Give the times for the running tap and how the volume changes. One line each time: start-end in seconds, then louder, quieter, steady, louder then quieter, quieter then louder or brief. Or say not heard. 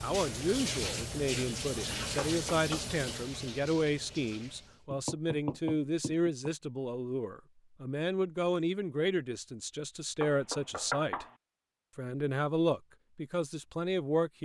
0.0-4.8 quieter.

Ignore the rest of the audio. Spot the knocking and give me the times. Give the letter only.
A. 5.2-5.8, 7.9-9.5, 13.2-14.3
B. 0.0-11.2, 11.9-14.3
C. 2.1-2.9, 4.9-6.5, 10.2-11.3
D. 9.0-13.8
C.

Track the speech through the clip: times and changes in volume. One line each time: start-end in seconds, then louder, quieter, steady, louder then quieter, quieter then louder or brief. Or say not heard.
0.0-11.2 steady
11.9-14.3 brief.